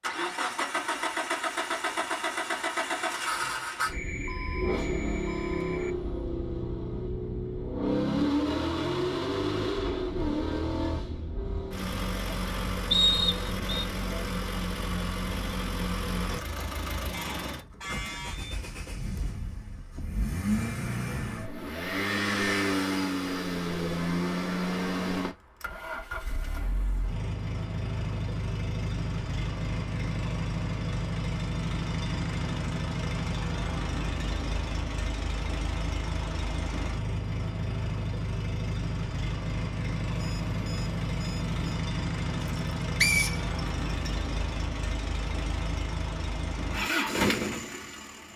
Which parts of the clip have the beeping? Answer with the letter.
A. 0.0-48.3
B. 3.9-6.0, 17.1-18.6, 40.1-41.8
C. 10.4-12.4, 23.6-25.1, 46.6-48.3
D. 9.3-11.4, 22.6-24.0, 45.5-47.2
B.